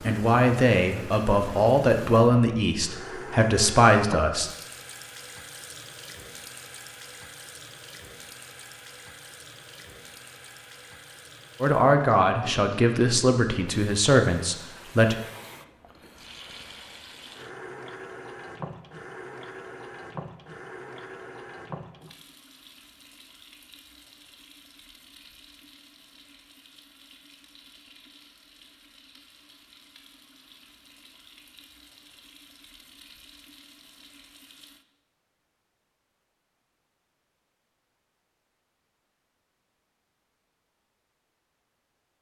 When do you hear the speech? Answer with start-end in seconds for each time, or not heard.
0.0-4.5, 11.6-15.2.